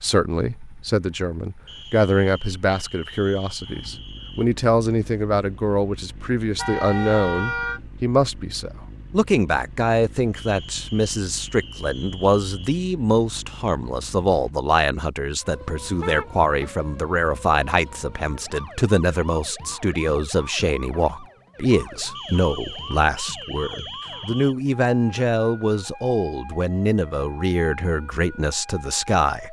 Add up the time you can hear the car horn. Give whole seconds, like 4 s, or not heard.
2 s.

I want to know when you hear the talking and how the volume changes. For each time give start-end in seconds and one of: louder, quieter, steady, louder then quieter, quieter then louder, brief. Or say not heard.
0.0-29.4 steady.